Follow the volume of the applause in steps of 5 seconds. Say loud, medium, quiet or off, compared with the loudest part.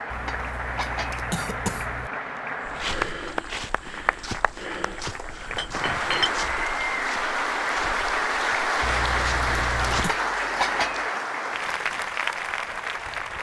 medium, loud, loud.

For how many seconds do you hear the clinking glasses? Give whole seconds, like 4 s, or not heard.
3 s.